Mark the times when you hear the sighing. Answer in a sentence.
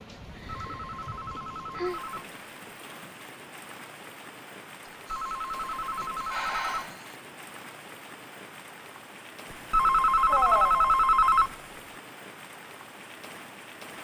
The sighing can be heard from 0.3 to 2.0 s, from 5.1 to 7.2 s and from 10.2 to 11.1 s.